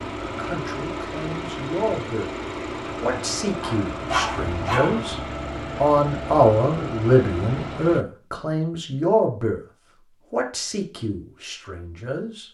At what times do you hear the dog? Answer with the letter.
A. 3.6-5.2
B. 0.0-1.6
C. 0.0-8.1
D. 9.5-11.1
A.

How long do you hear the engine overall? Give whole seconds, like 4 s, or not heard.
8 s.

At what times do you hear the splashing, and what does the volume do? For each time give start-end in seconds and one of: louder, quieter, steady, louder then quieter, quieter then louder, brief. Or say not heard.
not heard.